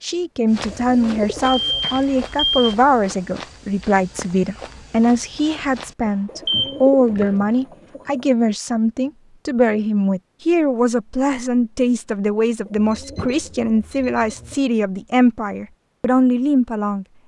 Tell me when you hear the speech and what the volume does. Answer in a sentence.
You can hear the speech from 0.0 to 17.1 s, at a steady volume.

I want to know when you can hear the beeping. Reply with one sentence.
You can hear the beeping from 1.6 to 2.7 s, from 6.0 to 7.3 s and from 12.8 to 14.6 s.